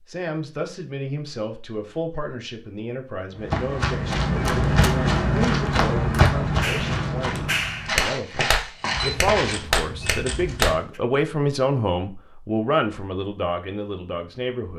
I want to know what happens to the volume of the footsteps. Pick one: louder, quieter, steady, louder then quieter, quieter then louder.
quieter.